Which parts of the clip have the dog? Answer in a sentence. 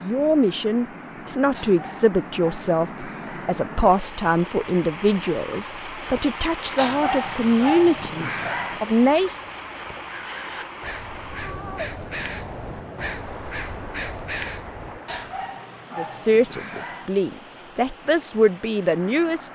You can hear the dog from 1.5 to 3.5 s, from 6.8 to 8.8 s and from 15.1 to 17.1 s.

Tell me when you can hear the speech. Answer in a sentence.
You can hear the speech from 0.0 to 9.3 s and from 15.9 to 19.5 s.